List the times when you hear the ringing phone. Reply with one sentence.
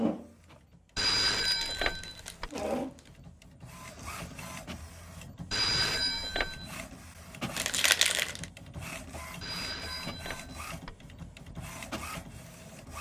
You can hear the ringing phone from 0.9 to 2.5 s, from 5.5 to 6.7 s and from 9.4 to 11.1 s.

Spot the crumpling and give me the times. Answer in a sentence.
The crumpling can be heard from 1.4 to 3.1 s and from 7.5 to 8.4 s.